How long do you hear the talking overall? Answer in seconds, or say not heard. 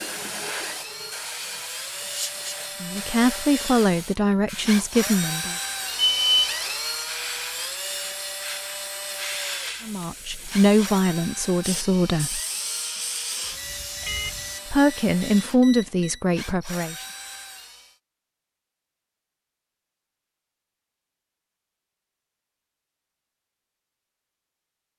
8 s.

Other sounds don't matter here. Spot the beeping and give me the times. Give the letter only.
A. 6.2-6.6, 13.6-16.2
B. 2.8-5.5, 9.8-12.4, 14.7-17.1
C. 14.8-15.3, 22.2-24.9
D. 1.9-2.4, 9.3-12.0
A.